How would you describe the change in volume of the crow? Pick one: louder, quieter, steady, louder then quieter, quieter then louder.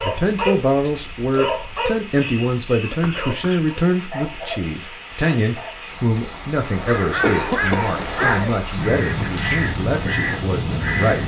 steady.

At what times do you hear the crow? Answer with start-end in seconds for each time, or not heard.
6.6-11.2.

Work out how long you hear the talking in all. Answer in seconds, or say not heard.
11 s.